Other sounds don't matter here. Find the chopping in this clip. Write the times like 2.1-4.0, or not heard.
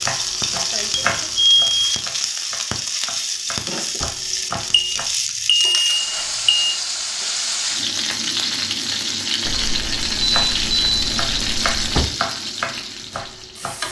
0.0-5.0, 10.2-13.8.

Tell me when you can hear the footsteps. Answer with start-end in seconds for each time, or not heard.
not heard.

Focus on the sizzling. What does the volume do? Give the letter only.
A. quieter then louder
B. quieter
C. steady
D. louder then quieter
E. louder
C.